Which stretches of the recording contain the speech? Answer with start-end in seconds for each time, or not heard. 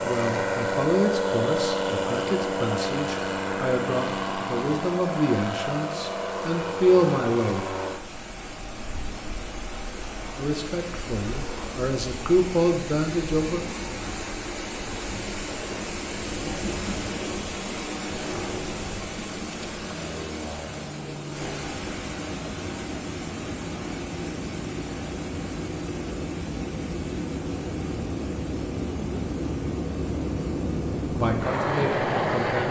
0.0-7.8, 10.3-13.7, 31.1-32.6.